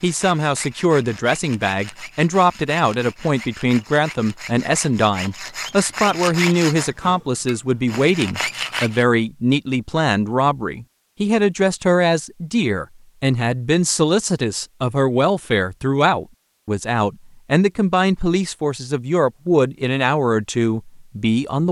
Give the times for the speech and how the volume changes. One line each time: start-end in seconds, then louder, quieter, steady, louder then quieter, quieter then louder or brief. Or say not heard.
0.0-21.6 steady.